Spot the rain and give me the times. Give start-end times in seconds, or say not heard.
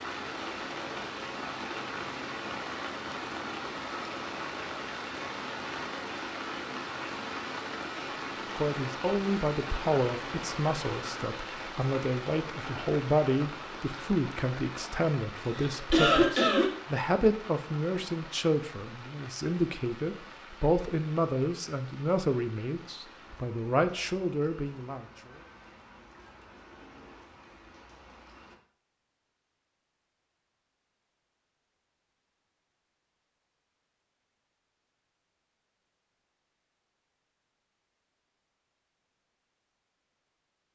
0.0-28.6.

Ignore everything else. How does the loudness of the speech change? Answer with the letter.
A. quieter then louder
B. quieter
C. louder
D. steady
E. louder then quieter
D.